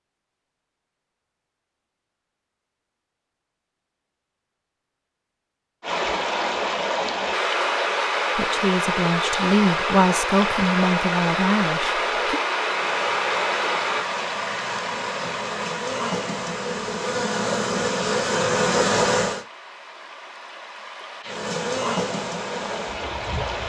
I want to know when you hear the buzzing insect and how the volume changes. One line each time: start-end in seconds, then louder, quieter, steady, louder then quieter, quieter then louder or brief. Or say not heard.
12.7-19.4 louder
21.2-23.6 brief.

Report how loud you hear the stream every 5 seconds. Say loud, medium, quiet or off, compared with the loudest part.
off, loud, loud, medium, medium.